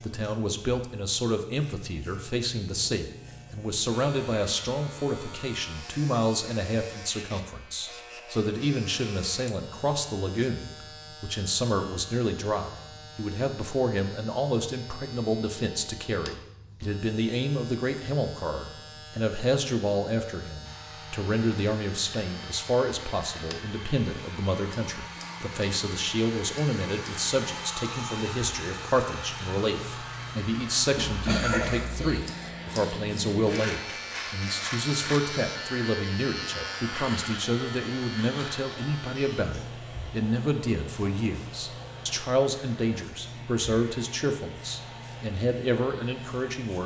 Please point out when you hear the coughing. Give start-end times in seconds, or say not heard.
30.9-32.2.